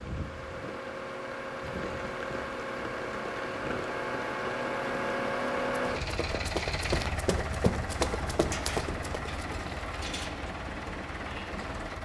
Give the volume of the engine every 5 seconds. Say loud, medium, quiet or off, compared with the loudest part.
loud, loud, medium.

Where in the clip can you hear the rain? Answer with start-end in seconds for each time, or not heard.
0.0-11.9.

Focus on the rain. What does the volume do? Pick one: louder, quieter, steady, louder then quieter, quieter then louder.
steady.